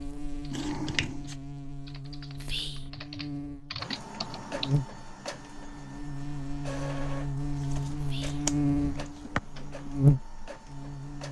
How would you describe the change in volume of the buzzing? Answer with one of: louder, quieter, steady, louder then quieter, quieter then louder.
louder.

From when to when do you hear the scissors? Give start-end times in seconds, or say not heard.
0.5-1.4, 7.6-9.4.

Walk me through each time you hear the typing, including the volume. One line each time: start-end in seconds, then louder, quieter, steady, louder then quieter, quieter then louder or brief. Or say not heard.
0.0-4.8 louder.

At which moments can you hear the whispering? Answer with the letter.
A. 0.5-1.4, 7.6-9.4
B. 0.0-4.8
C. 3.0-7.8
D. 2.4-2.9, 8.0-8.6
D.